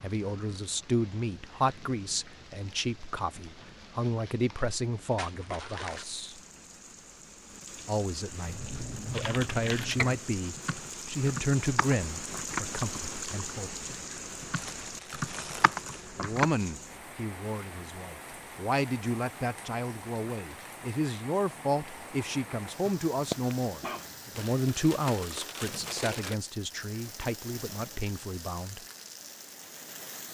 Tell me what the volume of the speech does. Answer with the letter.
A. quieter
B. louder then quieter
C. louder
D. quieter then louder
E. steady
E.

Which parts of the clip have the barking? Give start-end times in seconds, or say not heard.
22.9-24.1.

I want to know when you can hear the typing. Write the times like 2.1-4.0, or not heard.
8.4-16.5.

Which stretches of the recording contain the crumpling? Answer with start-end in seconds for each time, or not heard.
5.0-6.2, 14.6-16.1, 24.4-26.4.